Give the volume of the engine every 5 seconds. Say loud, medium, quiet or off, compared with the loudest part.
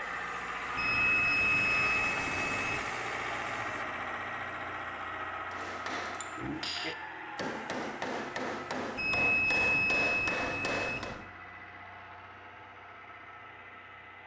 loud, medium, quiet.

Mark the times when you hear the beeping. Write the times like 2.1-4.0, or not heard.
0.8-3.0, 8.9-11.2.